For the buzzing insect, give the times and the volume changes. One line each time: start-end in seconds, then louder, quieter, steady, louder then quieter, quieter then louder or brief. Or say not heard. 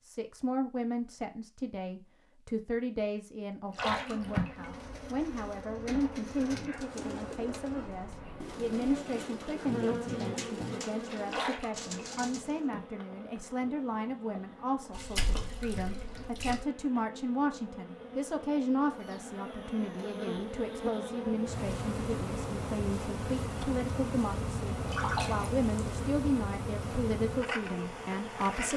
3.7-28.7 quieter then louder.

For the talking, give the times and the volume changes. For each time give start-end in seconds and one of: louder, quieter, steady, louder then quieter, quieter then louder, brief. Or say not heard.
0.0-28.7 steady.